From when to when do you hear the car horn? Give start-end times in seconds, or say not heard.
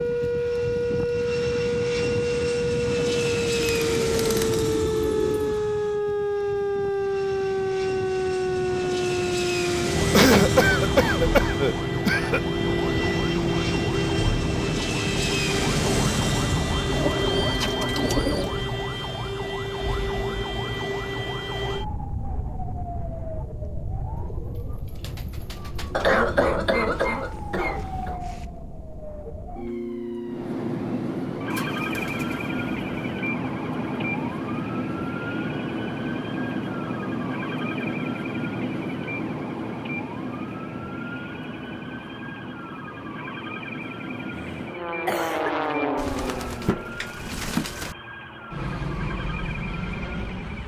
not heard.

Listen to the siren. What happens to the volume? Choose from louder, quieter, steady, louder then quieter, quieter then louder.
quieter.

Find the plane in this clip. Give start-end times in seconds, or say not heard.
0.0-17.6, 30.2-50.6.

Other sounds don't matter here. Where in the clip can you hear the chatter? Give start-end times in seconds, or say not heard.
not heard.